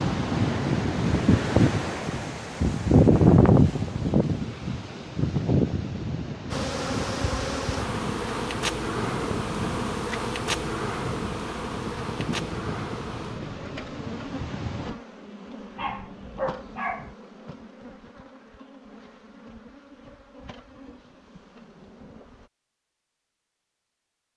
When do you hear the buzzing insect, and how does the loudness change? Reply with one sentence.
You can hear the buzzing insect from 6.5 to 22.5 s, getting quieter.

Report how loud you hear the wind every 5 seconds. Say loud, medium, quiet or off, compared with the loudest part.
loud, medium, quiet, off, off.